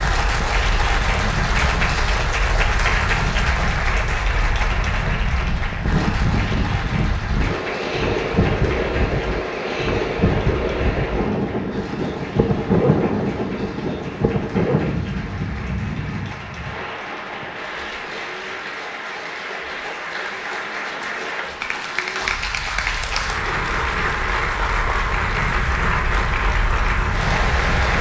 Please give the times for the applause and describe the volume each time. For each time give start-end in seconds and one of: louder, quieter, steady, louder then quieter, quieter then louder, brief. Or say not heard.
0.0-27.9 quieter then louder.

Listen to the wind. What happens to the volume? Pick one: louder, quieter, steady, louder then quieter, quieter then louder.
louder then quieter.